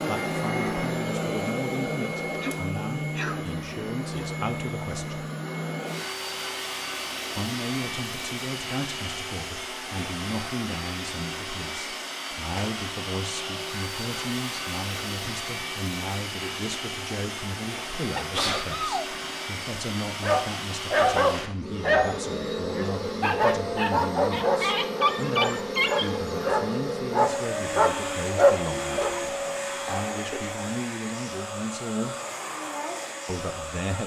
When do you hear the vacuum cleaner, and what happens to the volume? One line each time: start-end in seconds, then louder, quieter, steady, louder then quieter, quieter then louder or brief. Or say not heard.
0.0-34.0 steady.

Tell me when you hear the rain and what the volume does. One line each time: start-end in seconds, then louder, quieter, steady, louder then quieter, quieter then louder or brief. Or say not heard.
not heard.